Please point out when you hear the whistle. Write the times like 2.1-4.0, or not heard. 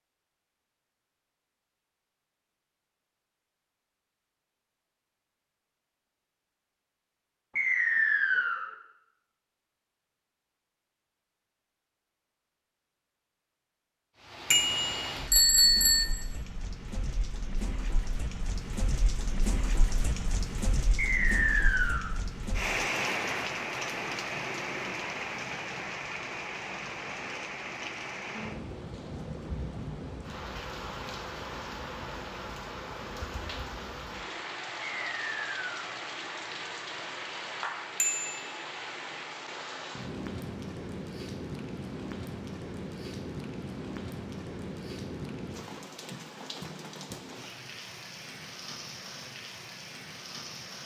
7.5-8.7, 20.9-22.1, 35.0-35.7.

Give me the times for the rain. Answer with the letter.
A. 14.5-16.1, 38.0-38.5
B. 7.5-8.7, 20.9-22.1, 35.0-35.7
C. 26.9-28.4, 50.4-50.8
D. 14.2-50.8
D.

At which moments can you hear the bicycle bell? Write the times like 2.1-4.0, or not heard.
14.5-16.1, 38.0-38.5.